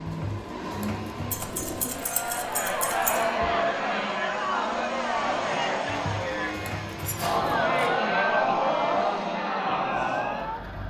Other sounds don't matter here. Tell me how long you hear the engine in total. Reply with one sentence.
You can hear the engine for 11 seconds altogether.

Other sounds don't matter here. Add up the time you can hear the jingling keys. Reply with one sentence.
You can hear the jingling keys for 3 seconds altogether.